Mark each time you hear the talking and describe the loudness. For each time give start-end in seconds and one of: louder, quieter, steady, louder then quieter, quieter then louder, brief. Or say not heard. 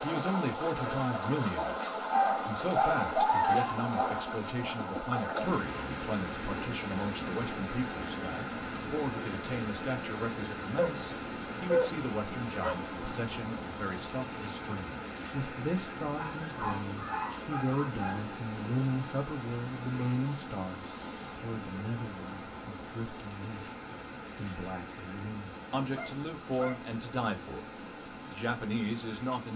0.0-27.6 steady
28.2-29.5 brief.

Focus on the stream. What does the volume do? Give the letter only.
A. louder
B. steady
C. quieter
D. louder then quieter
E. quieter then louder
C.